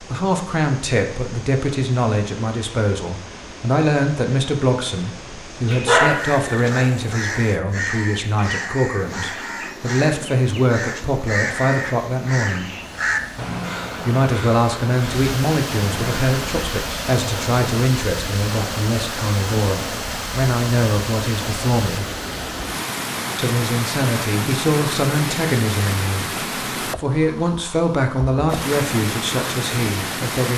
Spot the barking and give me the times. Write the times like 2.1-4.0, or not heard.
5.7-6.7.